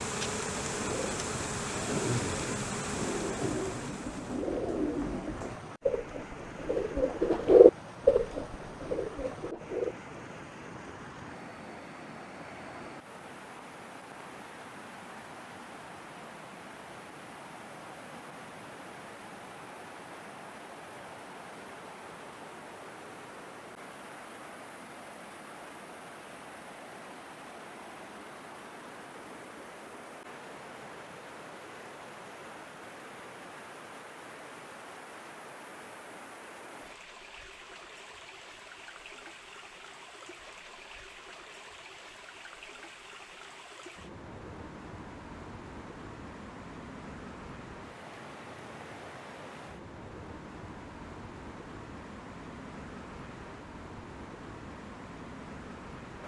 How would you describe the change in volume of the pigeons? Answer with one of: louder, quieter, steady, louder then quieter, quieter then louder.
louder then quieter.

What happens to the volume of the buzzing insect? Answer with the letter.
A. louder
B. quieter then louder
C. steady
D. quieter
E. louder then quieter
D.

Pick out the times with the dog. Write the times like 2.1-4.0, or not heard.
not heard.